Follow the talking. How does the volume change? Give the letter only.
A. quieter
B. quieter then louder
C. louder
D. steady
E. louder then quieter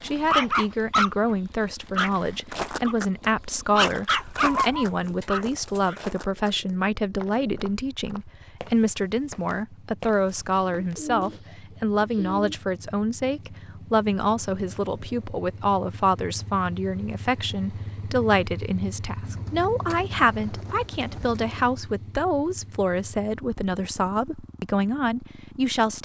D.